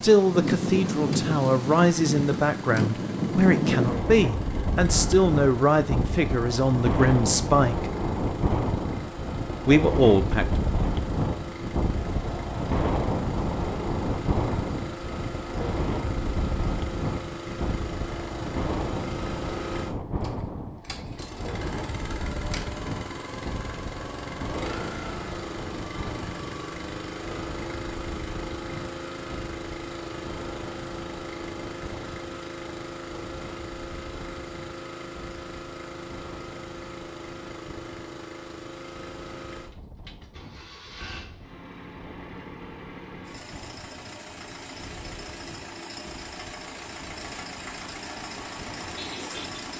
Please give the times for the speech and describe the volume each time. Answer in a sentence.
The speech can be heard from 0.0 to 7.9 s, at a steady volume; and briefly from 9.7 to 10.4 s.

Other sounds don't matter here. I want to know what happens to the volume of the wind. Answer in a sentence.
The volume of the wind goes down.